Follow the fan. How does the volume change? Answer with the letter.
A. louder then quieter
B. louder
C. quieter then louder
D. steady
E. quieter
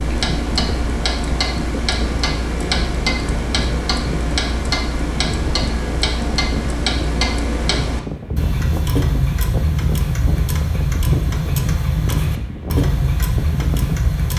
D.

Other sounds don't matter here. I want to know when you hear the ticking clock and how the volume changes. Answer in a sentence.
The ticking clock can be heard from 0.0 to 14.3 s, at a steady volume.